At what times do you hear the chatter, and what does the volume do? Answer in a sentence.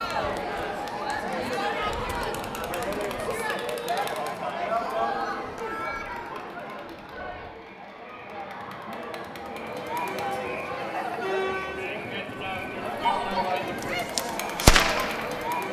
You can hear the chatter from 0.0 to 15.6 s, getting quieter then louder.